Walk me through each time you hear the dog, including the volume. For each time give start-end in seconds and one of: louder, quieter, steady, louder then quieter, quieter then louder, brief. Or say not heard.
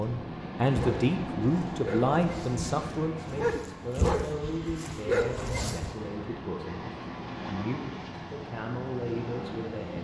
0.7-6.0 quieter then louder.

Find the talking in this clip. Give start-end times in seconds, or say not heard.
0.0-9.9.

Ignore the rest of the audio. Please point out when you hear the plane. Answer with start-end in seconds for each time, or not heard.
0.0-9.9.